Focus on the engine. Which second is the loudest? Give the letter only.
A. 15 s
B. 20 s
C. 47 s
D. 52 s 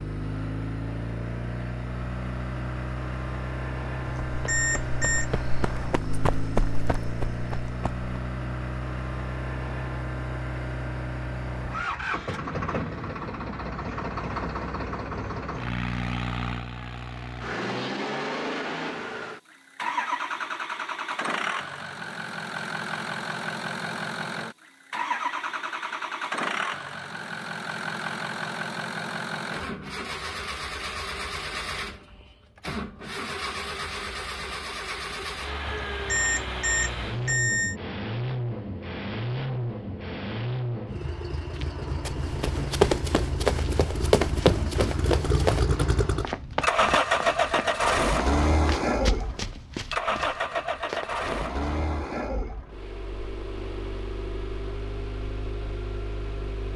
C.